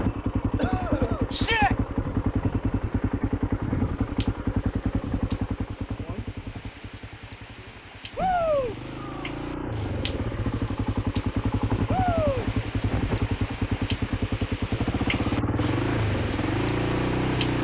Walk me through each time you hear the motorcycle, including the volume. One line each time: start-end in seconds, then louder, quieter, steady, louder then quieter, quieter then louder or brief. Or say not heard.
0.0-17.6 quieter then louder.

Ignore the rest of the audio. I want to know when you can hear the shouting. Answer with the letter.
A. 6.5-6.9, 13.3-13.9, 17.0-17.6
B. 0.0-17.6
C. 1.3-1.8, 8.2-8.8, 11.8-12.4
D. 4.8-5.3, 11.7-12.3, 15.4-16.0
C.